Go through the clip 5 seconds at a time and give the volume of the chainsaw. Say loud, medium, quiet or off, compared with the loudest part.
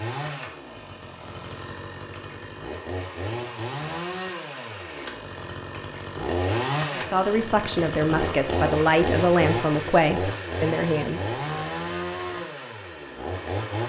medium, loud, loud.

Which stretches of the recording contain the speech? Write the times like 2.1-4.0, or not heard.
6.9-11.2.